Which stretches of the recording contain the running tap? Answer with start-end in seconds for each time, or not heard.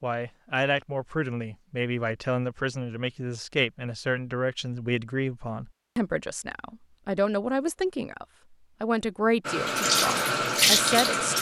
9.4-11.3.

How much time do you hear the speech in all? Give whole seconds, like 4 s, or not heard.
11 s.